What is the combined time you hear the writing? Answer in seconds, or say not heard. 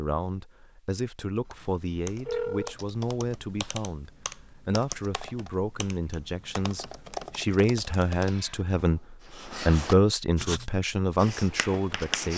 3 s.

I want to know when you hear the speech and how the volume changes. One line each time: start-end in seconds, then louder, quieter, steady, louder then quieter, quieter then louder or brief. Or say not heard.
0.0-12.3 louder.